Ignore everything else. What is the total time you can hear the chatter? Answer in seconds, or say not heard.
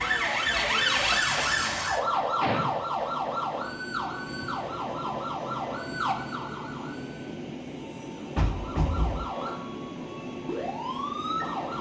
not heard.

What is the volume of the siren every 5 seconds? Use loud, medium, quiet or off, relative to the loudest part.
loud, medium, medium.